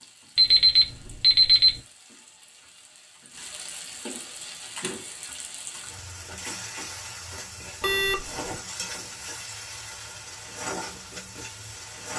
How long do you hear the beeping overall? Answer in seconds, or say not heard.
2 s.